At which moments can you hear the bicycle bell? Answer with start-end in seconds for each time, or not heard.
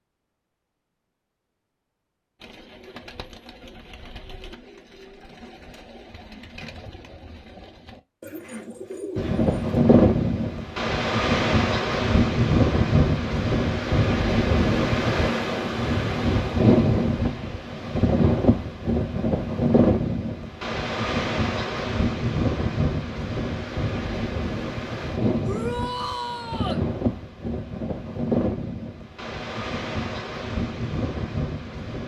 not heard.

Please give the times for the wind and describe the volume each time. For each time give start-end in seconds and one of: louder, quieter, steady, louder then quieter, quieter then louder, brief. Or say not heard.
9.2-32.0 quieter.